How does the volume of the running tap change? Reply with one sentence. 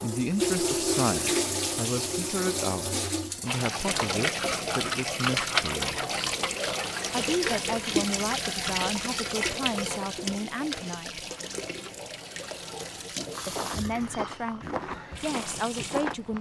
The loudness of the running tap goes down.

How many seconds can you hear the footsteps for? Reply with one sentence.
You can hear the footsteps for 3 seconds altogether.